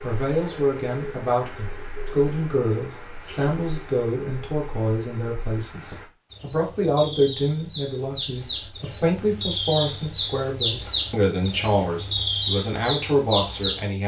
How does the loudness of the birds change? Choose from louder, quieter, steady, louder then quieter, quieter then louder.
louder.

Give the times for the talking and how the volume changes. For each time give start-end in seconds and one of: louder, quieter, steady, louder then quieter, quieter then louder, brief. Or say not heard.
0.0-14.0 steady.